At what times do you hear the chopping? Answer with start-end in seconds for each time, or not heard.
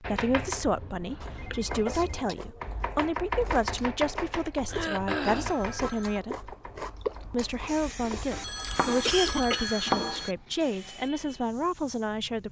0.0-11.4.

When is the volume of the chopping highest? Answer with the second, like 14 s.
10 s.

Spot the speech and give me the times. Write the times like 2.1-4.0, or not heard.
0.0-6.5, 7.3-12.4.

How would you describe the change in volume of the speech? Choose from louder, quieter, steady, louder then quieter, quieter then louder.
steady.